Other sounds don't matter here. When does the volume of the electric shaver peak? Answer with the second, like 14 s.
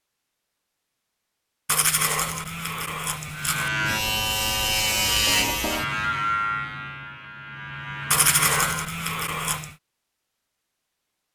5 s.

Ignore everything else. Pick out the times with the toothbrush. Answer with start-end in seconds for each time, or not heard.
1.6-3.7, 8.1-9.8.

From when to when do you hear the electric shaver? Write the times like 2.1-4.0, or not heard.
3.4-8.9.